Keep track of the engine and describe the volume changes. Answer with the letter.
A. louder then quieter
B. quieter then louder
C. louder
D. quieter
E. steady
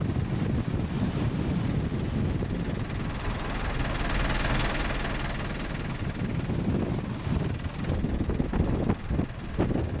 A.